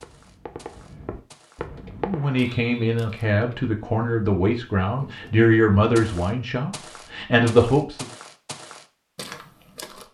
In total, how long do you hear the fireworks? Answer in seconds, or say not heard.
2 s.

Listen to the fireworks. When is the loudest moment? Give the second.
2 s.